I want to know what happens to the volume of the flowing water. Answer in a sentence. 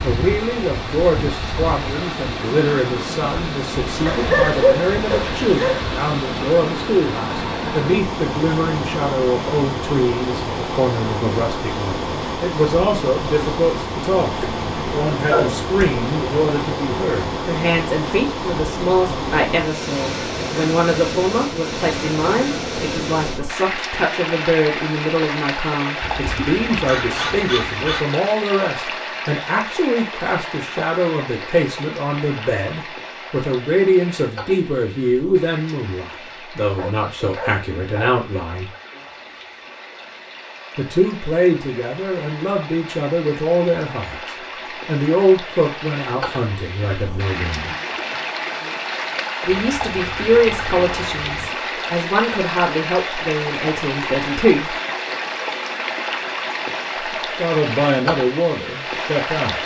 The volume of the flowing water goes down, then up.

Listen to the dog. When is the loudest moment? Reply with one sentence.
The loudest moment of the dog is at 5 seconds.